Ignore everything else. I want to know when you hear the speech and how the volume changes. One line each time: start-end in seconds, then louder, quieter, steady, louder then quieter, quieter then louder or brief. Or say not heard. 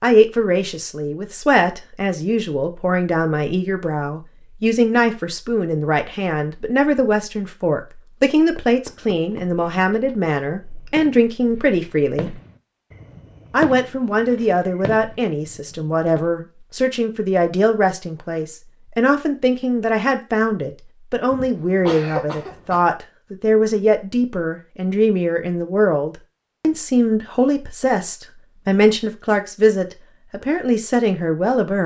0.0-12.3 steady
13.5-31.8 steady.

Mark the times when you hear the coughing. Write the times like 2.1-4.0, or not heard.
21.3-22.9.